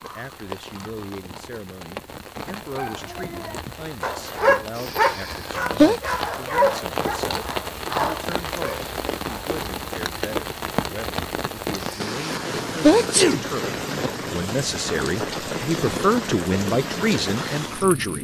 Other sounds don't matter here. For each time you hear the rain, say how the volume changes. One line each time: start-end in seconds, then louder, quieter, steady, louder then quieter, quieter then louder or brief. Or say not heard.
0.0-18.1 louder.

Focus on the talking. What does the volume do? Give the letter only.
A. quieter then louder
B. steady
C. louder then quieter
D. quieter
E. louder
E.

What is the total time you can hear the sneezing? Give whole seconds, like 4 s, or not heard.
3 s.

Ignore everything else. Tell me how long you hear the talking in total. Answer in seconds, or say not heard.
18 s.